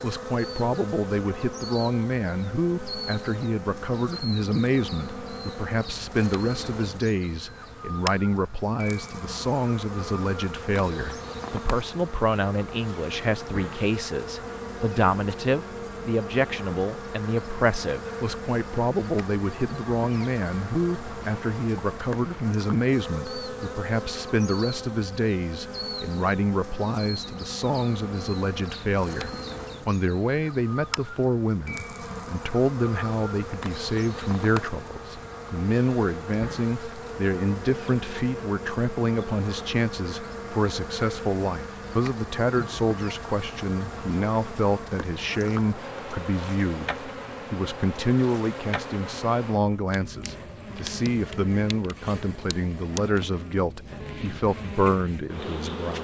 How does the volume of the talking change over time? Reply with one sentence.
The volume of the talking stays about the same.